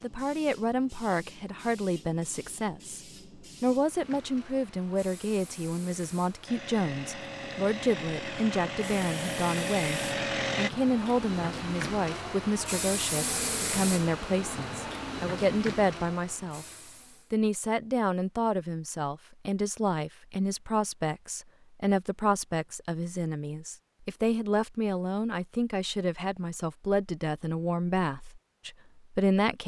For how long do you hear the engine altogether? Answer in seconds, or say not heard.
4 s.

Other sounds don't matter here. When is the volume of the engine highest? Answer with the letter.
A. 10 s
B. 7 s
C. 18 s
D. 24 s
A.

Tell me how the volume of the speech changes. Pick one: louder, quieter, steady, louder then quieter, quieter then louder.
steady.